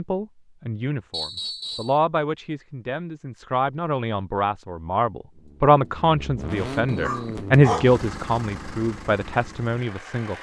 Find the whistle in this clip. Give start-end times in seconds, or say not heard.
1.1-1.9, 6.8-7.5.